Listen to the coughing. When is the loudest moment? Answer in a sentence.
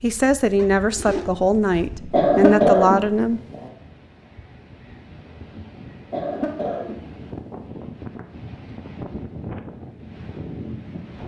The loudest moment of the coughing is at 3 seconds.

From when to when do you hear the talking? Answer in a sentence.
You can hear the talking from 0.0 to 3.4 s.